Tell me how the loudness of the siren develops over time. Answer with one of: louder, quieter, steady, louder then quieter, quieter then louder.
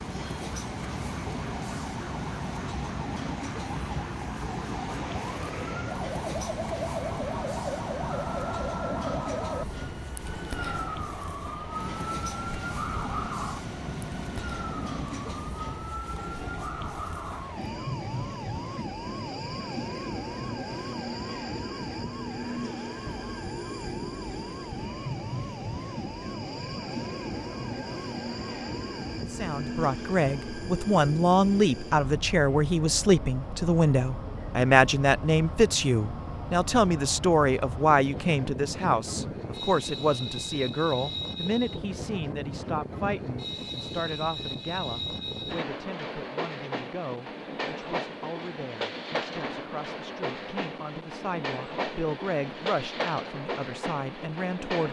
quieter.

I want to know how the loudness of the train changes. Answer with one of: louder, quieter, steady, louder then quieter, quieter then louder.
steady.